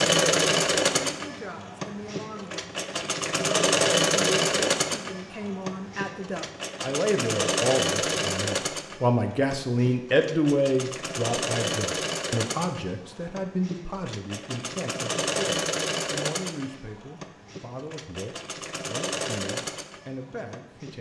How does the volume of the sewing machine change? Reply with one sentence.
The volume of the sewing machine goes down.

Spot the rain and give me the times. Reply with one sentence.
You can't hear the rain here.